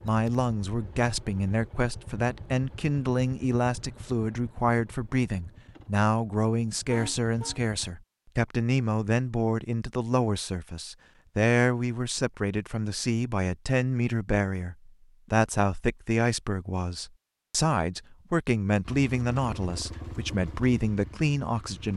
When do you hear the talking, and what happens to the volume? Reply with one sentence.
The talking can be heard from 0.0 to 21.9 s, at a steady volume.